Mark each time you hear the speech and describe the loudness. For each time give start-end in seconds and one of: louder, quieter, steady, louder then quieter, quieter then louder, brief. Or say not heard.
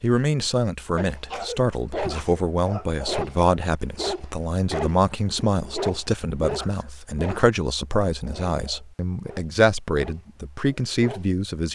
0.0-11.7 steady.